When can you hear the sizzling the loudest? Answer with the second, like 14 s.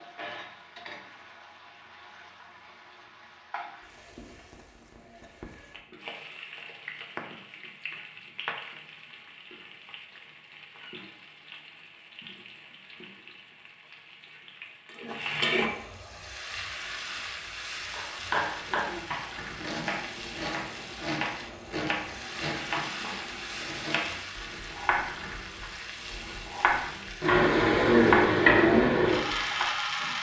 28 s.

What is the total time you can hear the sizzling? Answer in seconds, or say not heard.
30 s.